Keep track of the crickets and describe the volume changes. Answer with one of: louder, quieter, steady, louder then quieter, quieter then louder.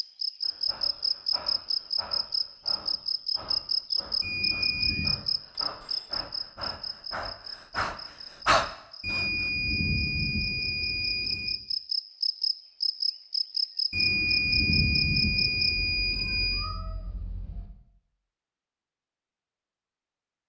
quieter then louder.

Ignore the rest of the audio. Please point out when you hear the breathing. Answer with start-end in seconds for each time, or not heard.
0.4-9.5.